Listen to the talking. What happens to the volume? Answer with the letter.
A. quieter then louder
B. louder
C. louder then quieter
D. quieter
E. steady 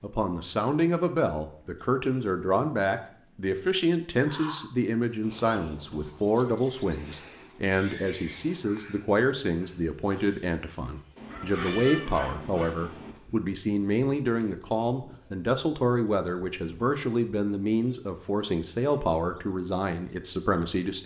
E.